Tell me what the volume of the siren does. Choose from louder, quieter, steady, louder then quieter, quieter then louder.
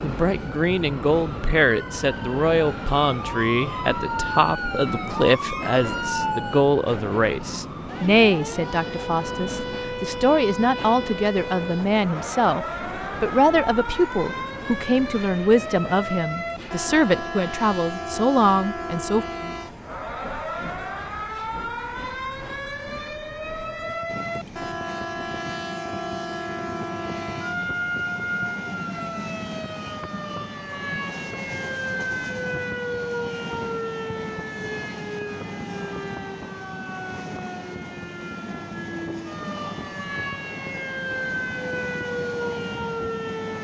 steady.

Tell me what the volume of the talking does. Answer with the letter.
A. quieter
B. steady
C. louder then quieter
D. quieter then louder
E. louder
B.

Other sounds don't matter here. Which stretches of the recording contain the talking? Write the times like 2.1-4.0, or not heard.
0.0-19.2.